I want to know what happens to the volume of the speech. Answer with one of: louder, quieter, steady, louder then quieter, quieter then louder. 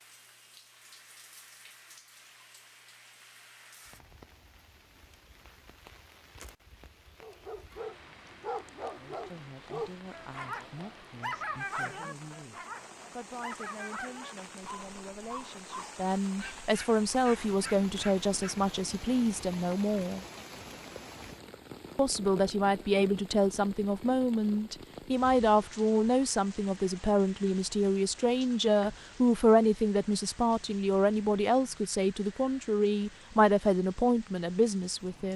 louder.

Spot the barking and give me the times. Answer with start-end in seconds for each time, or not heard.
7.2-18.6.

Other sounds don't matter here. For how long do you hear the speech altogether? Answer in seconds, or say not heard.
25 s.